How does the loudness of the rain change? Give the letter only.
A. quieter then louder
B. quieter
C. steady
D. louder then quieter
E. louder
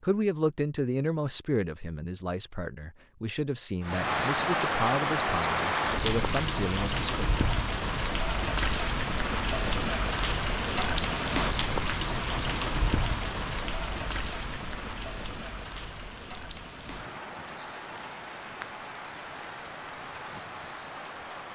B.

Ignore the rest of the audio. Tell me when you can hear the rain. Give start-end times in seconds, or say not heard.
3.8-21.4.